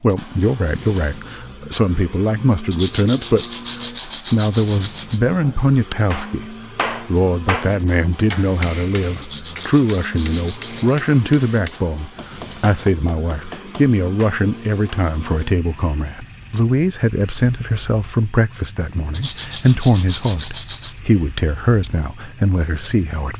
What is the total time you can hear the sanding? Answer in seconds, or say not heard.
6 s.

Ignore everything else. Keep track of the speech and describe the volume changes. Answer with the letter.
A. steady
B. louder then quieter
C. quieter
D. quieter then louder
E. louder
A.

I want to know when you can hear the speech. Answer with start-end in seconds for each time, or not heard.
0.0-23.3.